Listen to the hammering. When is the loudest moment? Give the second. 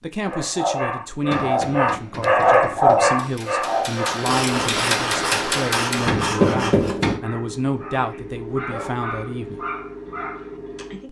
7 s.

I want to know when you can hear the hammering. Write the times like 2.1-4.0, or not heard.
1.2-7.2.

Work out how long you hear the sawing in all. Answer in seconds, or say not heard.
3 s.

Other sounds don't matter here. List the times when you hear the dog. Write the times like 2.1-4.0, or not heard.
0.2-11.0.